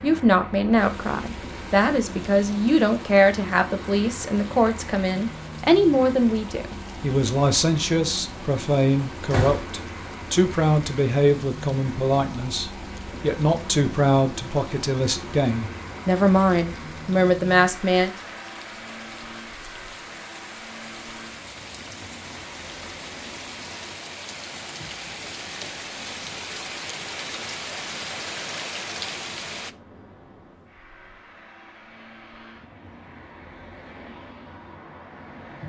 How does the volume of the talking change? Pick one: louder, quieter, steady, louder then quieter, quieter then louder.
steady.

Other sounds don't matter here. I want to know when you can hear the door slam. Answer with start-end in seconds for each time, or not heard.
9.0-9.8.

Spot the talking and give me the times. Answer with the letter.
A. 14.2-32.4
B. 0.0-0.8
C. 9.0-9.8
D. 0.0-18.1
D.